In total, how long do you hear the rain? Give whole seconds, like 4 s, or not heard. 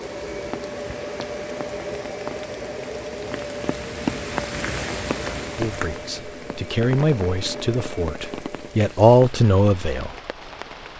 11 s.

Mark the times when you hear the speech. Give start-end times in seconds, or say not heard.
5.5-10.1.